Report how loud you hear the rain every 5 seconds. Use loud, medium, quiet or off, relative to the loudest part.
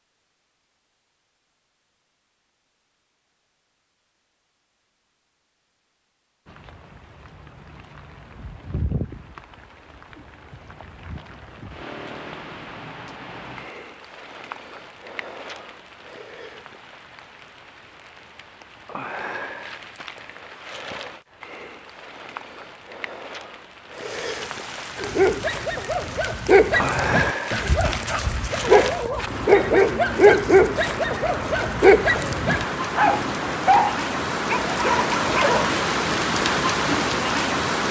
off, quiet, quiet, quiet, quiet, medium, medium, loud.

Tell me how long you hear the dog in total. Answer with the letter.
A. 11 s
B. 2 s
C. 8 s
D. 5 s
A.